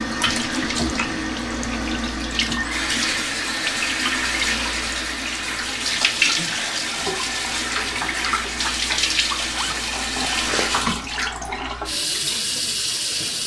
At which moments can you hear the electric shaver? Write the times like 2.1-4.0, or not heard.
not heard.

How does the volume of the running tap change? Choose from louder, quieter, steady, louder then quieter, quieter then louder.
steady.